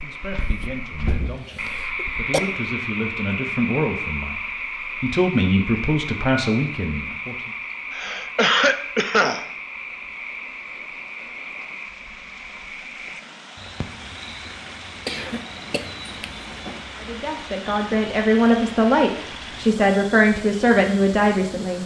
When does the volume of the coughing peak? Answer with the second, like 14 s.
9 s.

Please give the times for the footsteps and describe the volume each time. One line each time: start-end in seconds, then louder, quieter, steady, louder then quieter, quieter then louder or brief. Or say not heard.
not heard.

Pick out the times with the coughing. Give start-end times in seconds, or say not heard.
0.4-2.4, 7.9-9.4, 15.1-16.8.